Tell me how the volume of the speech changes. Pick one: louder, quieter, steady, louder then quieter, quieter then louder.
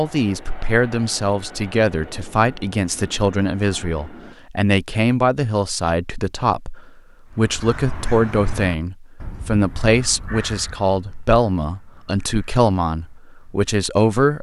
steady.